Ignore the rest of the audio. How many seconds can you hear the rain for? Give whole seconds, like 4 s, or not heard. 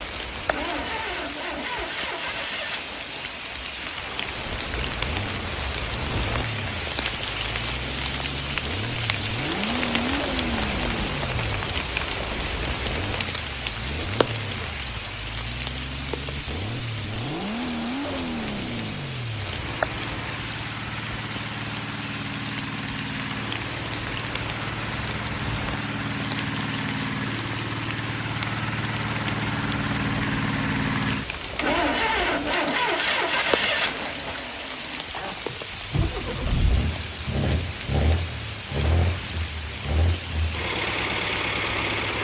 42 s.